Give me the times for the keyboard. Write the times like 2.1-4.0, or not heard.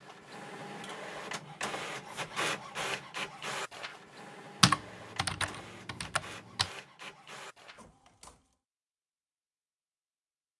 4.6-6.7.